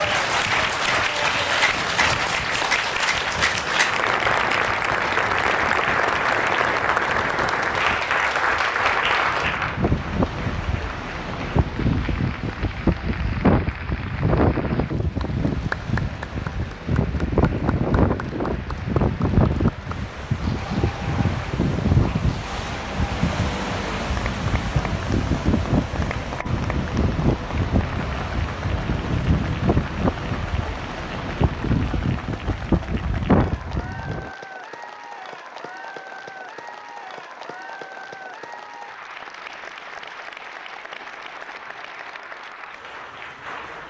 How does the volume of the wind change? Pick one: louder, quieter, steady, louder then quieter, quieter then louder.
louder.